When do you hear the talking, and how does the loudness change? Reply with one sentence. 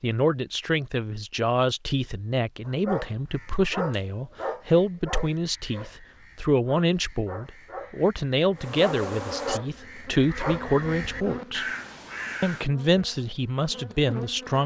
The talking can be heard from 0.0 to 11.7 s, at a steady volume; and briefly from 12.4 to 14.6 s.